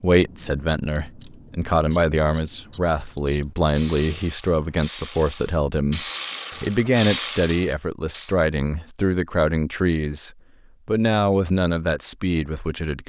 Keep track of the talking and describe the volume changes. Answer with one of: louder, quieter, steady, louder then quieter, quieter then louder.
steady.